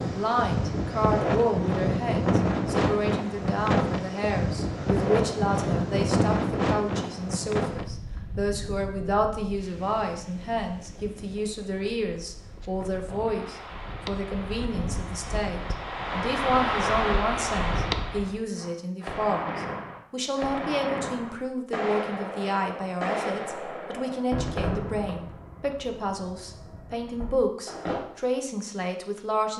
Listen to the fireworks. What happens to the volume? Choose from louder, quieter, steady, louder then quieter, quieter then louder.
quieter.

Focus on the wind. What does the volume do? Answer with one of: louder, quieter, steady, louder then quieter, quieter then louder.
quieter then louder.